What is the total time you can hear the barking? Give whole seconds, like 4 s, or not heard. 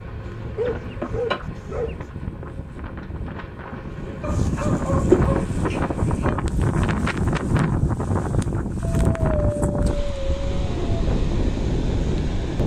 6 s.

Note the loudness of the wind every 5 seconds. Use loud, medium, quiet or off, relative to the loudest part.
medium, loud, loud.